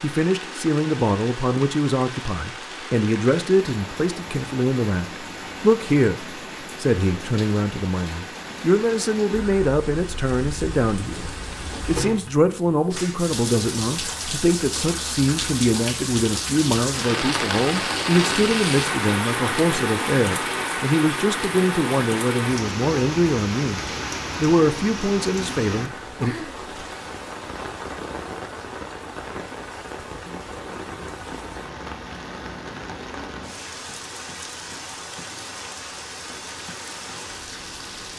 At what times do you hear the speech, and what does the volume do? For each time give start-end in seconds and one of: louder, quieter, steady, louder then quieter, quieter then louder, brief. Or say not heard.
0.0-26.4 steady.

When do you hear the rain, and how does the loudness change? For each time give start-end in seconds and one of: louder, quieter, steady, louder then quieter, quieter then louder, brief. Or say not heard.
0.0-38.1 louder then quieter.